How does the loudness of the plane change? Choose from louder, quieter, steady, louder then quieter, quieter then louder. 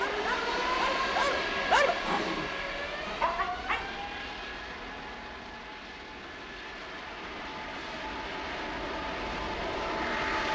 quieter then louder.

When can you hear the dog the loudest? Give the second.
2 s.